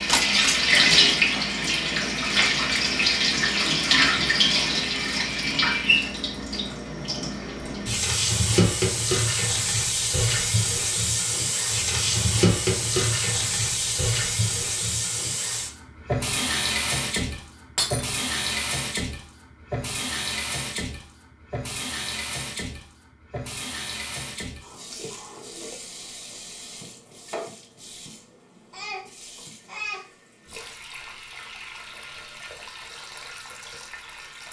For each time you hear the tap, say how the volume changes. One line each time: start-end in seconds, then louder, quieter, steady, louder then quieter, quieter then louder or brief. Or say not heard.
0.0-34.4 quieter.